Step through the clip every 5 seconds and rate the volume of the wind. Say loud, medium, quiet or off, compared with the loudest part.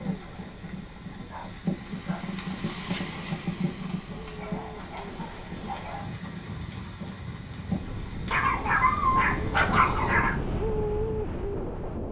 quiet, medium, loud.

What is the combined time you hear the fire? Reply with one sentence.
You can hear the fire for 10 seconds altogether.